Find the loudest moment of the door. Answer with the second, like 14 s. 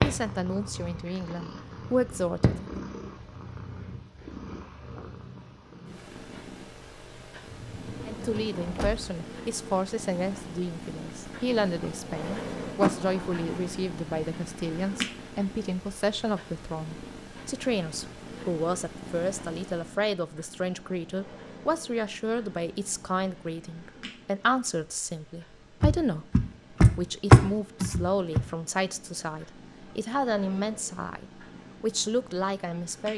27 s.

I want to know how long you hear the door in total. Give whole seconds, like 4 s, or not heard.
5 s.